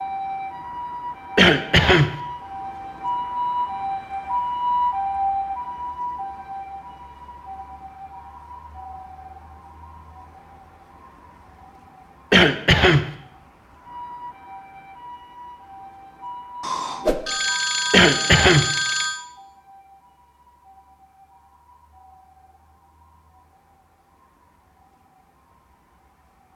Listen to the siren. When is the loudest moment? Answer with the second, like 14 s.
5 s.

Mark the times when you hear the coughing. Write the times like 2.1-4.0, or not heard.
1.4-2.1, 12.3-13.1, 17.9-18.6.